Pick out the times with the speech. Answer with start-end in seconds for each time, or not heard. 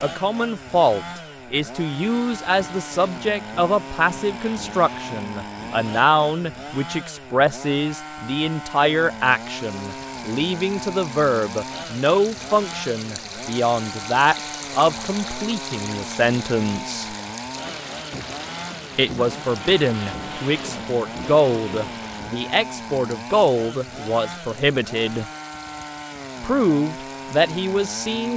0.0-17.1, 18.9-25.2, 26.4-28.3.